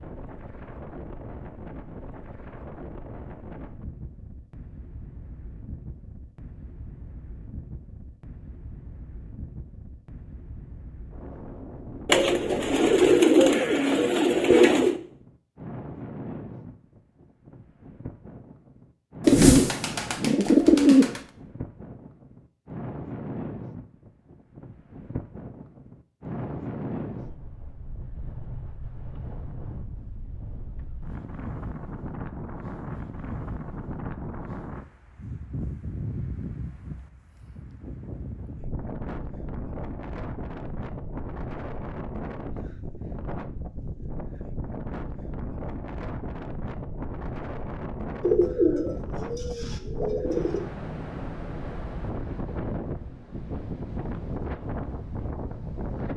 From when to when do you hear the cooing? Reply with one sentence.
You can hear the cooing from 12.1 to 14.9 s, from 19.2 to 21.2 s and from 48.2 to 50.6 s.